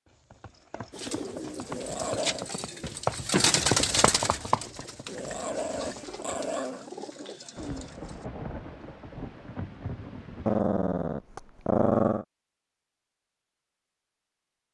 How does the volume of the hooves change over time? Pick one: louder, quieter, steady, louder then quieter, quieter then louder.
louder then quieter.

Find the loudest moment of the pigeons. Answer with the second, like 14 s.
4 s.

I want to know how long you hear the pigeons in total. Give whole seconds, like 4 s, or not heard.
7 s.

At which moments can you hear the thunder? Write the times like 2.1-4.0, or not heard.
7.5-10.6.